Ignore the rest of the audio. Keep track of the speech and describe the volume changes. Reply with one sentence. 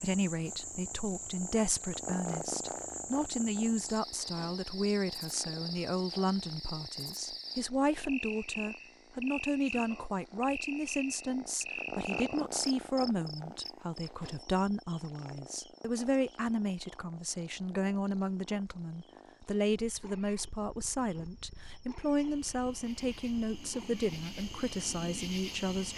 The loudness of the speech stays about the same.